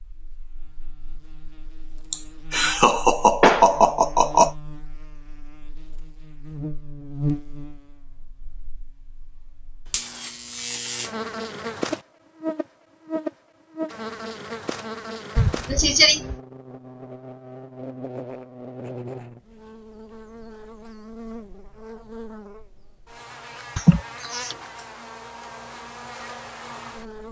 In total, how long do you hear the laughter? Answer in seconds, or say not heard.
4 s.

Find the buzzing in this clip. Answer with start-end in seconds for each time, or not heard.
0.0-27.2.